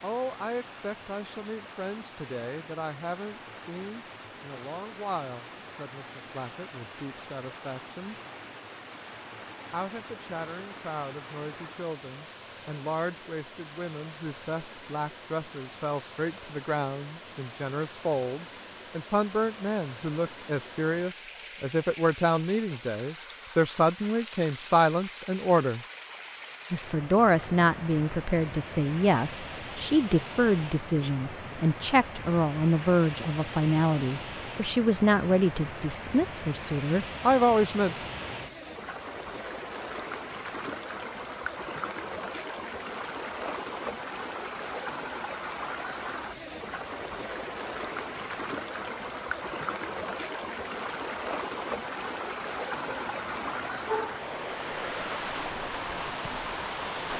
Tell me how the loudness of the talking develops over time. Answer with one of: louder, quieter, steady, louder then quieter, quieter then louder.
louder.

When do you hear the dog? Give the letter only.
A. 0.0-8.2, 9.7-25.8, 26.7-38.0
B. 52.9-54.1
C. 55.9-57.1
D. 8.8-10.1
B.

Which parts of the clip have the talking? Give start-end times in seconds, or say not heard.
0.0-8.2, 9.7-25.8, 26.7-38.0.